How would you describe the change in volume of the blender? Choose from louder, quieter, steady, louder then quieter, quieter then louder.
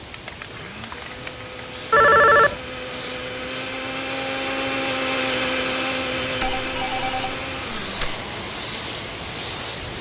louder then quieter.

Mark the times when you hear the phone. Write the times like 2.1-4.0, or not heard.
1.9-2.6, 6.4-8.2.